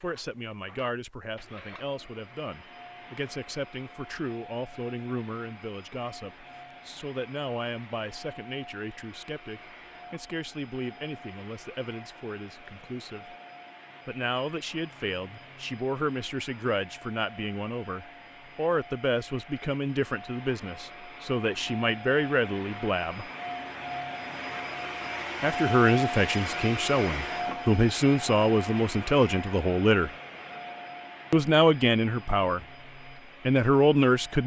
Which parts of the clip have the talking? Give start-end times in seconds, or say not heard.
0.0-13.3, 14.1-23.2, 25.4-30.1, 31.3-32.6, 33.5-34.4.